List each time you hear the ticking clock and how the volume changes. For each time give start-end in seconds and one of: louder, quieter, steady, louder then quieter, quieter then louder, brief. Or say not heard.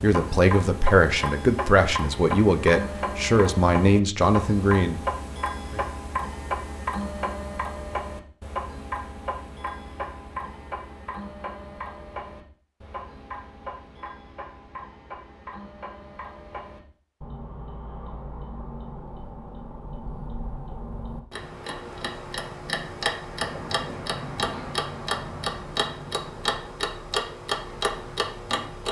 0.0-28.8 quieter then louder.